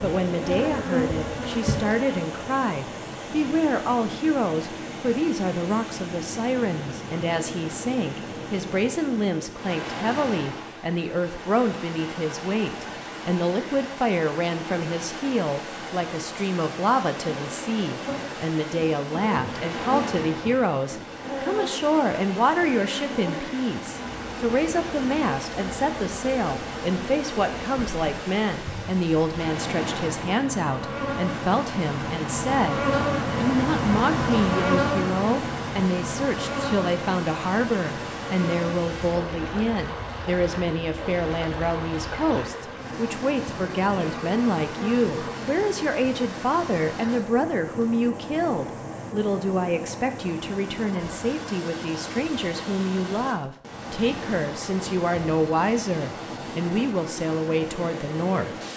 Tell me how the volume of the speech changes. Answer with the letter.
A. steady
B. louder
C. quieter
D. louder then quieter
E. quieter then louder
A.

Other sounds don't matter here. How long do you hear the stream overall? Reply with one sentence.
The stream can be heard for 59 seconds in total.